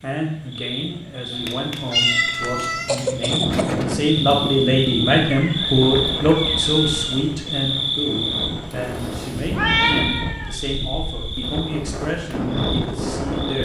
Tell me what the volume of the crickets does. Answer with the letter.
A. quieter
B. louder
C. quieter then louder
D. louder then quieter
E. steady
D.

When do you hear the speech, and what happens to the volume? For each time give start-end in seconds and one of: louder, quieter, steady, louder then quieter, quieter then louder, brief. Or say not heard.
0.0-13.6 louder then quieter.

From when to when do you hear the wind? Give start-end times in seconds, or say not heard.
3.2-13.6.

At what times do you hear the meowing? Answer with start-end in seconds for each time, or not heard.
1.3-3.0, 5.3-7.2, 9.6-10.6.